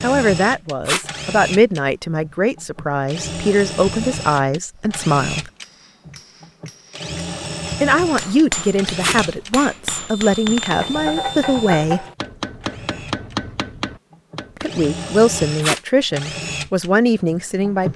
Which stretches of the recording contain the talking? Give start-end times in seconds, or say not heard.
0.0-5.5, 7.8-12.1, 14.6-17.9.